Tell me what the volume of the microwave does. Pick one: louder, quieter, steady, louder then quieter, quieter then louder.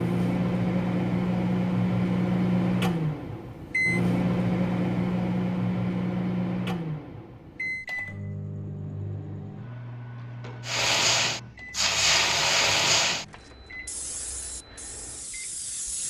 quieter.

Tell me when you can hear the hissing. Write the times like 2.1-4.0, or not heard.
10.7-16.0.